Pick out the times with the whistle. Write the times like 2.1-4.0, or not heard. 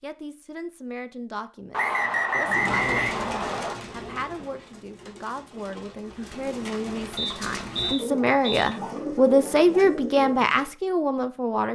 1.7-3.8, 7.2-8.8.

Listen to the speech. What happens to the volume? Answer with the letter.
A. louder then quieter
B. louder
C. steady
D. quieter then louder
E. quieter
B.